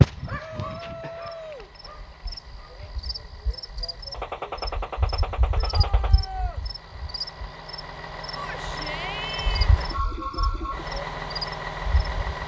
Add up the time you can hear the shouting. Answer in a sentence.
The shouting can be heard for 4 seconds in total.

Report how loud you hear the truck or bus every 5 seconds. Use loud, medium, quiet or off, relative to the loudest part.
quiet, medium, loud.